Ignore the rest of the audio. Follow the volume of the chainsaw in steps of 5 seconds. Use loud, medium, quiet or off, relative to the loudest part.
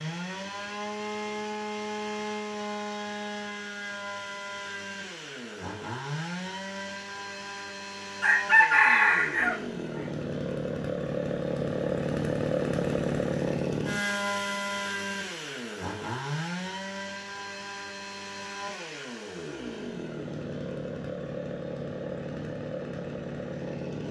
medium, medium, loud, medium, medium.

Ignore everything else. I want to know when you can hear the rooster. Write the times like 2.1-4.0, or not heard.
8.2-10.0.